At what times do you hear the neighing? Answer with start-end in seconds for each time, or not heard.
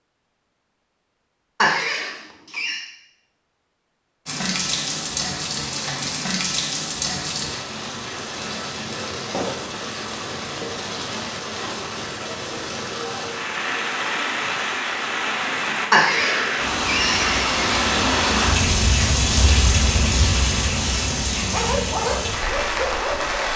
1.6-2.8, 15.9-17.6.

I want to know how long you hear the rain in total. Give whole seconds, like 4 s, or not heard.
19 s.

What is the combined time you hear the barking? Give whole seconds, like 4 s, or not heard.
2 s.